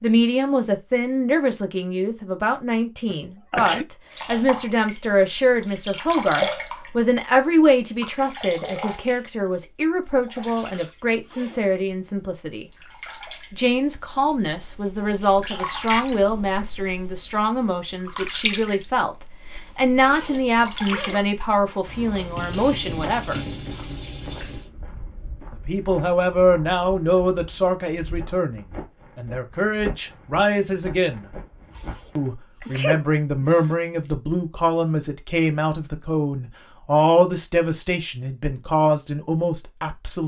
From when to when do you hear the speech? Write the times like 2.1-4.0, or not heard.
0.0-12.7, 13.5-23.4, 25.5-31.2, 32.1-40.2.